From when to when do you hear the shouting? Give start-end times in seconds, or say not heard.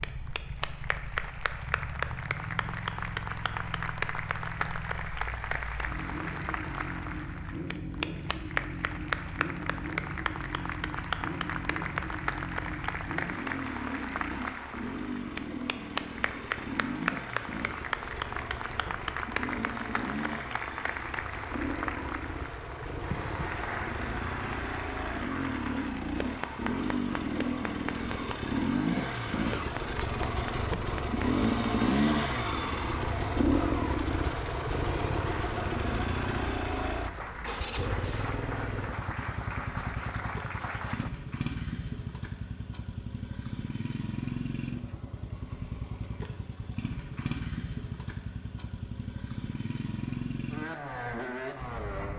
not heard.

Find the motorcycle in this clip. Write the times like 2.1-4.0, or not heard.
0.0-52.1.